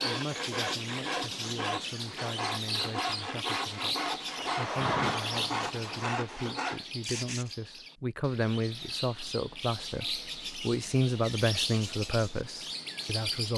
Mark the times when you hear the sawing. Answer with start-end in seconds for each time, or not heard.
0.0-7.5.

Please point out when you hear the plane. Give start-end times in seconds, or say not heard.
4.3-6.2.